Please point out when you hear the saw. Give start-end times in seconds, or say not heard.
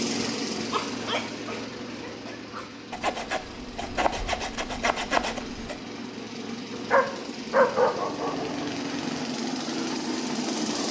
2.9-5.8.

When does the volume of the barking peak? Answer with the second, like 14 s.
8 s.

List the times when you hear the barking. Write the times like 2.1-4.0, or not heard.
0.7-2.7, 6.9-8.7.